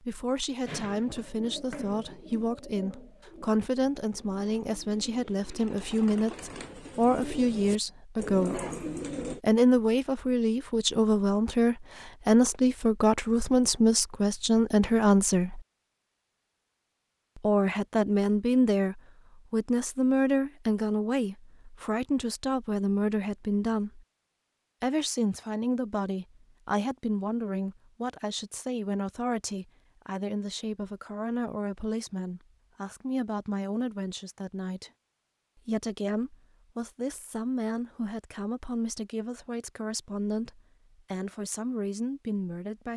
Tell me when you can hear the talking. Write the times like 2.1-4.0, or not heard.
0.0-8.7, 9.4-15.6, 17.4-24.0, 24.8-34.9, 35.6-42.9.